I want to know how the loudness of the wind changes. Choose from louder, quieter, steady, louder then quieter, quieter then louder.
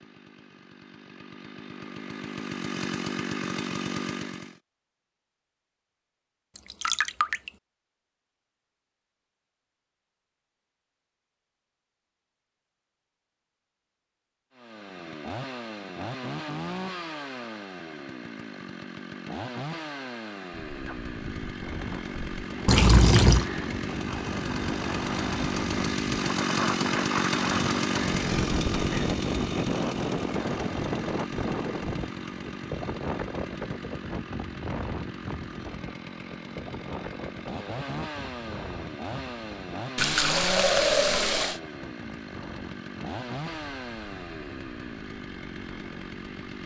louder then quieter.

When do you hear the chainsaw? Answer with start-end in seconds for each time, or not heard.
0.0-4.5, 14.6-46.6.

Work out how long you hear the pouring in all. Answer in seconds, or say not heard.
3 s.